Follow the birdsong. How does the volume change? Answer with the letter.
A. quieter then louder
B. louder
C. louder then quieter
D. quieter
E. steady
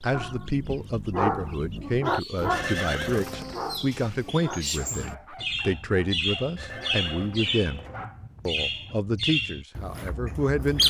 B.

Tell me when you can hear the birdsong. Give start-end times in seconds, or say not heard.
0.0-10.8.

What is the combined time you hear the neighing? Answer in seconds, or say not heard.
3 s.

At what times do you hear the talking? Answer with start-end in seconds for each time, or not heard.
0.0-7.8, 8.4-10.8.